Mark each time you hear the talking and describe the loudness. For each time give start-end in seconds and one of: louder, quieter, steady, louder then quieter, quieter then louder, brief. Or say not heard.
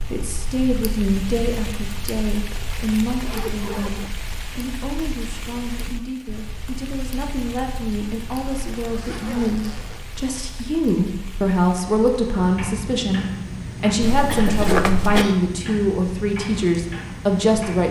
0.1-17.8 quieter then louder.